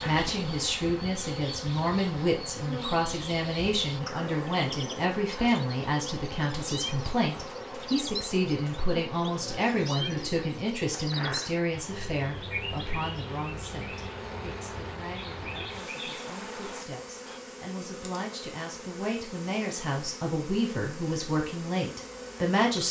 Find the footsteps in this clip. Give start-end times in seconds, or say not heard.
not heard.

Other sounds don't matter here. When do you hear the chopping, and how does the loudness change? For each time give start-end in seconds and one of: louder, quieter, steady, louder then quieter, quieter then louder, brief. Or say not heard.
not heard.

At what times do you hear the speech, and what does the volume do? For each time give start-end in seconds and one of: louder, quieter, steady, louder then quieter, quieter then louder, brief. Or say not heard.
0.1-22.8 quieter then louder.